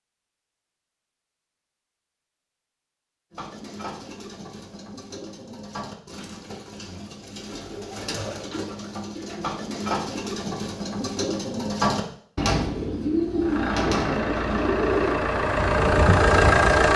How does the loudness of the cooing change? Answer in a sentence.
The volume of the cooing goes up.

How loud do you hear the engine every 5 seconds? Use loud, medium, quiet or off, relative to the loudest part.
off, off, medium, loud.